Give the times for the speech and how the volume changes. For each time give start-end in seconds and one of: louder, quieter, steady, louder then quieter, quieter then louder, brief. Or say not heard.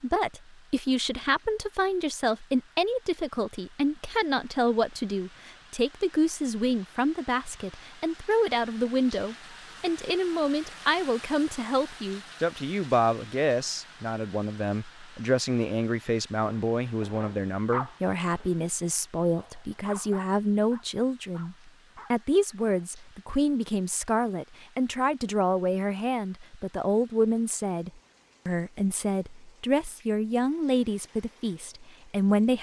0.0-32.5 steady.